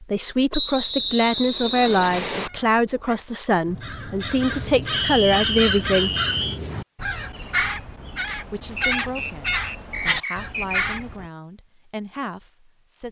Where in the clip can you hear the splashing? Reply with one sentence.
You can't hear the splashing here.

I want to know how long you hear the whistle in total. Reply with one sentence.
The whistle can be heard for 6 seconds in total.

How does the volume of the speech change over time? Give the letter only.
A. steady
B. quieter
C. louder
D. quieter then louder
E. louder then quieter
B.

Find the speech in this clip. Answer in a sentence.
The speech can be heard from 0.0 to 6.1 s and from 8.4 to 13.0 s.